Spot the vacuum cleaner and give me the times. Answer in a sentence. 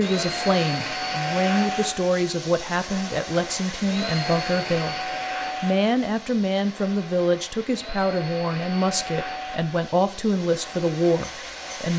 The vacuum cleaner can be heard from 0.0 to 11.9 s.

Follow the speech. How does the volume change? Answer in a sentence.
The loudness of the speech stays about the same.